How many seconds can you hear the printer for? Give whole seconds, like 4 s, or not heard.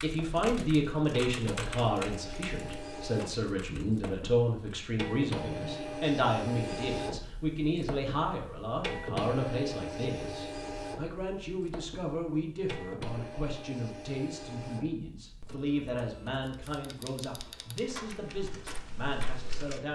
20 s.